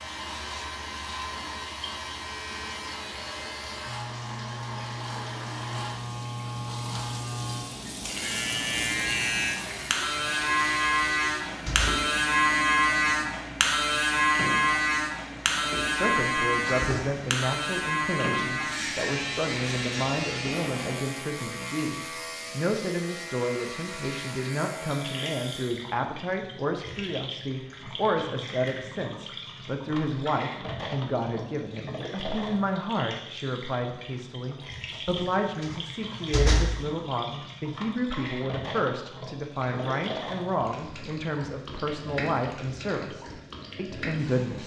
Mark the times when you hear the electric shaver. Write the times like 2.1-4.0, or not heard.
0.0-25.9.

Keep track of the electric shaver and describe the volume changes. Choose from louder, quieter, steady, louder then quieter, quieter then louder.
louder then quieter.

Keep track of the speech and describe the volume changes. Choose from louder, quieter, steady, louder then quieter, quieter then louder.
steady.